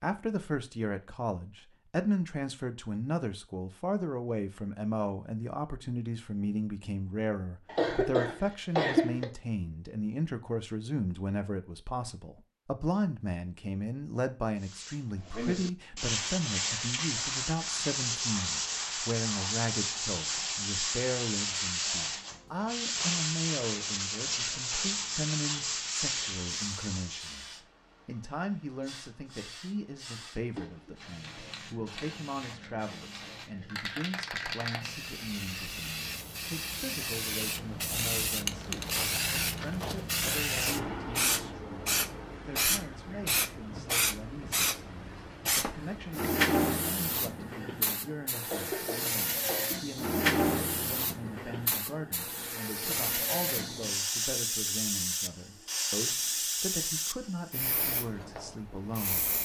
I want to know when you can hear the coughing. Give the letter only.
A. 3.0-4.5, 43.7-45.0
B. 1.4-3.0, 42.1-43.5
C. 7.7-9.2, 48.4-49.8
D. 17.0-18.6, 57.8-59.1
C.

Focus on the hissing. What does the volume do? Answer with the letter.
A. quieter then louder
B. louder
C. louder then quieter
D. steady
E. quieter
B.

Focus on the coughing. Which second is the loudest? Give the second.
9 s.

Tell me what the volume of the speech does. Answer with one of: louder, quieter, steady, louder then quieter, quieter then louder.
quieter.